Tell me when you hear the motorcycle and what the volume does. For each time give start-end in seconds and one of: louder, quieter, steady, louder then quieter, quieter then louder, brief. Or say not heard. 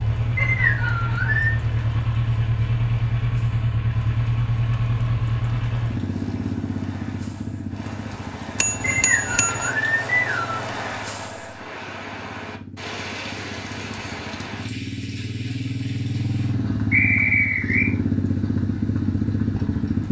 0.0-20.0 quieter then louder.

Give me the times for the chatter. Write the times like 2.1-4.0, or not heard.
not heard.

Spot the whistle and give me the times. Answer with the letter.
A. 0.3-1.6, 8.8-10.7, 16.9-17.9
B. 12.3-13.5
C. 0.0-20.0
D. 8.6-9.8
A.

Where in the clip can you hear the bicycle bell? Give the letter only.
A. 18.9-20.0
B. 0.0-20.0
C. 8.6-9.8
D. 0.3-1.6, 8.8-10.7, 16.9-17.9
C.